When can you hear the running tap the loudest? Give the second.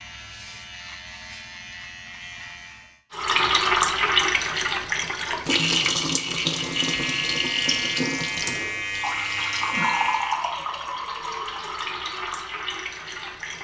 4 s.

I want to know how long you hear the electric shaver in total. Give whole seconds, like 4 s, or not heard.
7 s.